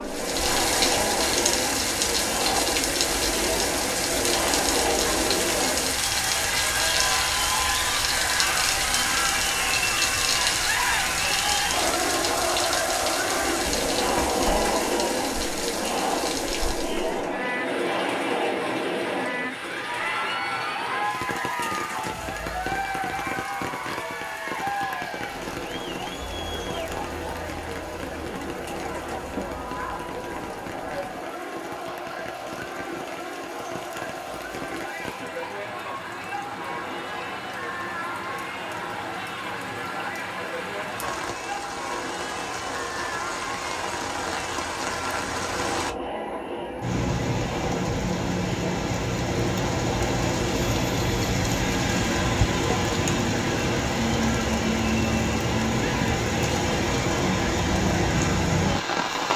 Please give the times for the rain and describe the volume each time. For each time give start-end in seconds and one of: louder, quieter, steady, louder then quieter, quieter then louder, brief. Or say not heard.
0.0-59.3 quieter then louder.